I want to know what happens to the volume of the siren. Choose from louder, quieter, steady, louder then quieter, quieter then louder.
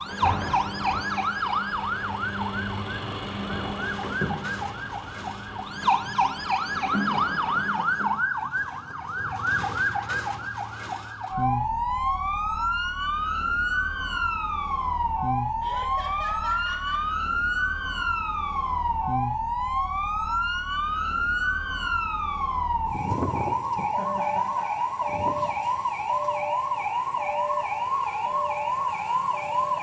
steady.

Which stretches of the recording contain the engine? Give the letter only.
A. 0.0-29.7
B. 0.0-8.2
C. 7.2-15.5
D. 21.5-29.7
B.